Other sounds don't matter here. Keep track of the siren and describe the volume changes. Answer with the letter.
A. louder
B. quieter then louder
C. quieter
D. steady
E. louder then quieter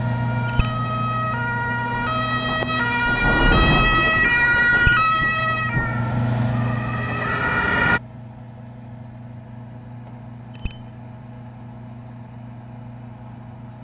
E.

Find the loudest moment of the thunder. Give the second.
4 s.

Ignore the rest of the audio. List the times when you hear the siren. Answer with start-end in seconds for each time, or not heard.
0.0-8.0.